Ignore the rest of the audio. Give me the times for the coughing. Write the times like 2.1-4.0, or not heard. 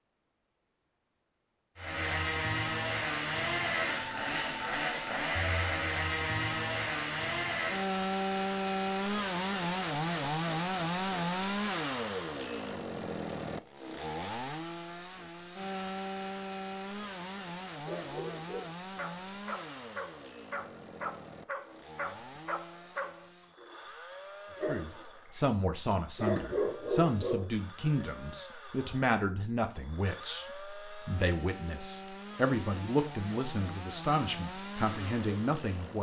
not heard.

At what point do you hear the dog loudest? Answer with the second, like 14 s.
26 s.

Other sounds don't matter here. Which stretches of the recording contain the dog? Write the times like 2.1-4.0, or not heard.
17.7-23.8, 24.6-28.1.